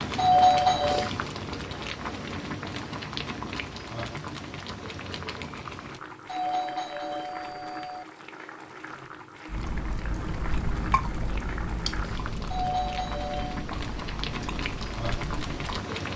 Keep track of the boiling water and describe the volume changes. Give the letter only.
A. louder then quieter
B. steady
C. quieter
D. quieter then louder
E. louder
D.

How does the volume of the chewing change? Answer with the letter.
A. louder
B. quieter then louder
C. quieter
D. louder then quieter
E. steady
C.